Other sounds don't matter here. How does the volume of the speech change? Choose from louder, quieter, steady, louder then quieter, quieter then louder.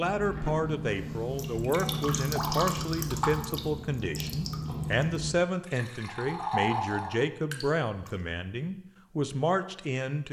steady.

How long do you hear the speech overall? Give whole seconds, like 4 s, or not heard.
10 s.